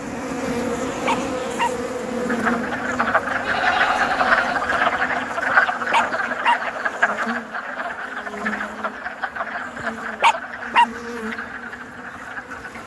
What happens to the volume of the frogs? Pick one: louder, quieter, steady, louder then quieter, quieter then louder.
quieter.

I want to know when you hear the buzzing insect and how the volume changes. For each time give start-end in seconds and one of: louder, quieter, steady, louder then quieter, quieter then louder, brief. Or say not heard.
0.0-12.8 quieter.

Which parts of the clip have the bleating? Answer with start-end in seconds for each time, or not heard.
3.4-4.8.